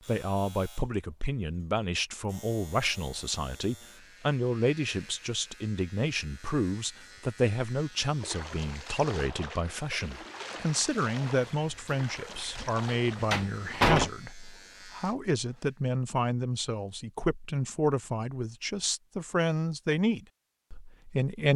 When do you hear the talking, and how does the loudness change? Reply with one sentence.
The talking can be heard from 0.1 to 21.5 s, at a steady volume.